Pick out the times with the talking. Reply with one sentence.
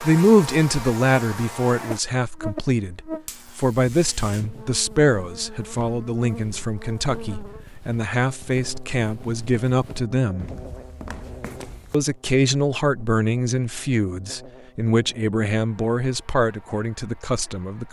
You can hear the talking from 0.0 to 10.6 s and from 11.9 to 17.8 s.